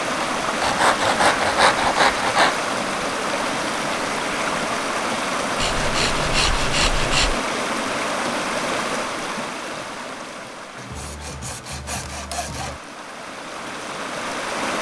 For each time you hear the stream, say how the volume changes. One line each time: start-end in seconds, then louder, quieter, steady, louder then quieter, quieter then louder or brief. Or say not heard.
0.0-14.7 quieter.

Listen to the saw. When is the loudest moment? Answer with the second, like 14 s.
2 s.